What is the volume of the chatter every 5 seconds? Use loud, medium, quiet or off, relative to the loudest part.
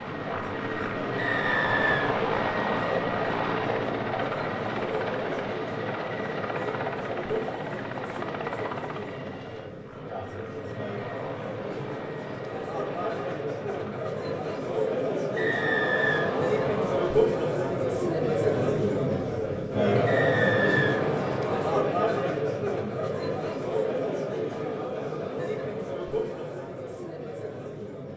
medium, medium, medium, loud, loud, medium.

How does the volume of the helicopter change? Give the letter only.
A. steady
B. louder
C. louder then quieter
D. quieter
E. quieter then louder
D.